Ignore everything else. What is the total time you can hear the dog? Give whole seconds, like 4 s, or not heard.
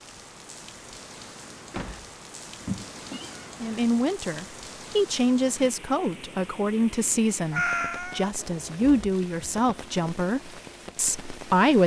not heard.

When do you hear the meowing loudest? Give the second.
8 s.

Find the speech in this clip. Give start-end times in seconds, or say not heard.
3.6-11.8.